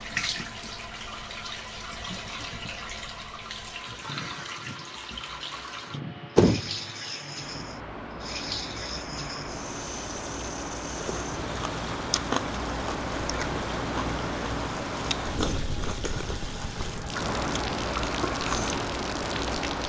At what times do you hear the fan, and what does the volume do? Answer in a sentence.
You can hear the fan from 0.0 to 19.8 s, getting louder.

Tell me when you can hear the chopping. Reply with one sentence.
You can't hear the chopping here.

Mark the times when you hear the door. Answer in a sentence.
You can hear the door from 6.3 to 7.2 s.